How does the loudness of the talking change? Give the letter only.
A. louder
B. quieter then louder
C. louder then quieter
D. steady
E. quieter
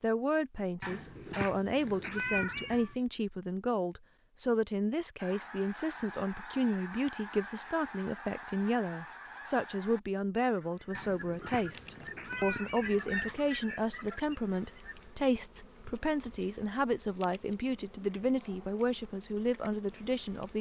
D.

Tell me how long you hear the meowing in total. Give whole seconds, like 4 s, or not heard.
5 s.